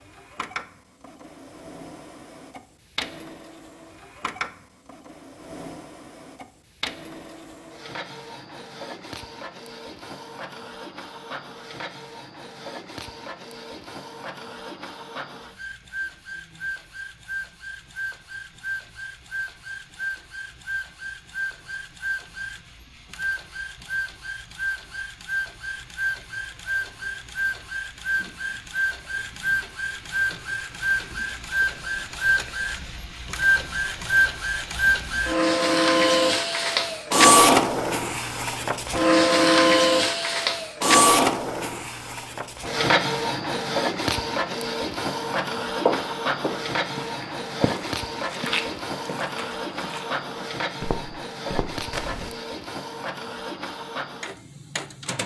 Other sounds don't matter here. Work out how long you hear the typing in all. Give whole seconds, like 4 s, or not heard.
not heard.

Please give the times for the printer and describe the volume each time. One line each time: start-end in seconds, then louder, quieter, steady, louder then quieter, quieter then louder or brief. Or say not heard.
0.0-55.2 louder then quieter.